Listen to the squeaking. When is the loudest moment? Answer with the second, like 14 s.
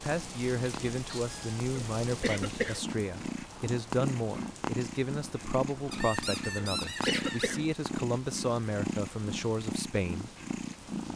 7 s.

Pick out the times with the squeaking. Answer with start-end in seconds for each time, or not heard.
1.1-1.6, 5.9-7.5.